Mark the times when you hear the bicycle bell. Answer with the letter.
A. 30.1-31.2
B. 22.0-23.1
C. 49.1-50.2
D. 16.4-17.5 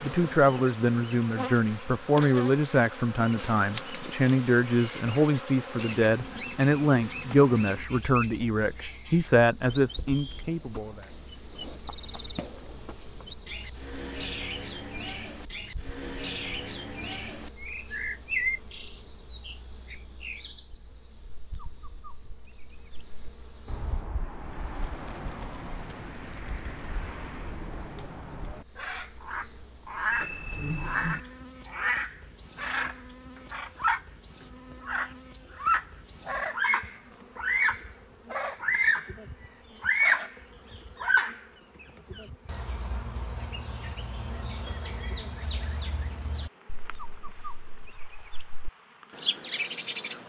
A.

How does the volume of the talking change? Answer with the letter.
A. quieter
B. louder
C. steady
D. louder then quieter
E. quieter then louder
C.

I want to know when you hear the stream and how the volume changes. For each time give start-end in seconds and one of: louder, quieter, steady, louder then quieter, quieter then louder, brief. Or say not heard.
not heard.